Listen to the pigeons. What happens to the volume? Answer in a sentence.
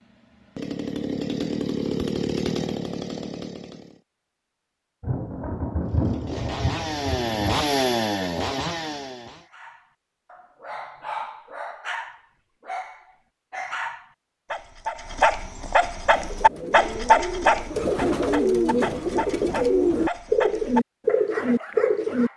The loudness of the pigeons goes up.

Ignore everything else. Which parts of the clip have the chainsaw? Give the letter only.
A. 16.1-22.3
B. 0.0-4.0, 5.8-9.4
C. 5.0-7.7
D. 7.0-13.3
B.